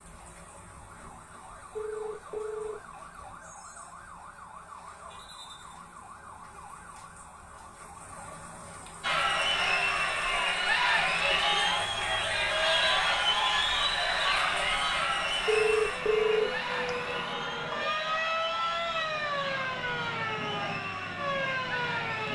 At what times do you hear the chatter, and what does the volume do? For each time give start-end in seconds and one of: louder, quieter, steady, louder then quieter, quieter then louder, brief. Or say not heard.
9.0-22.3 quieter.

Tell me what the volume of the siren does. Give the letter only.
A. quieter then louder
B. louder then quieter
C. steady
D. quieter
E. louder
E.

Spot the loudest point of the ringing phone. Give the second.
16 s.